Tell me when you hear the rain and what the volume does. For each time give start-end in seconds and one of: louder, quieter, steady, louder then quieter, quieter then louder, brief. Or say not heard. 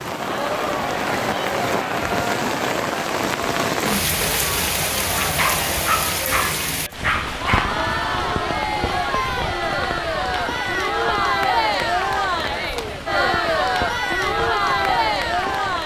0.0-15.8 quieter.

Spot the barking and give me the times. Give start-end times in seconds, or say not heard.
5.2-7.8.